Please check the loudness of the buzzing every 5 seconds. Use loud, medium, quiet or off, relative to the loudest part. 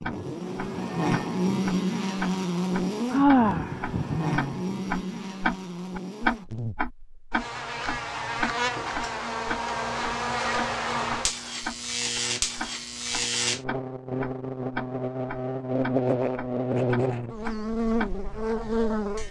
loud, medium, loud, loud.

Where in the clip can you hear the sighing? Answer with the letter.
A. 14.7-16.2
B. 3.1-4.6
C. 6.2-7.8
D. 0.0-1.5
B.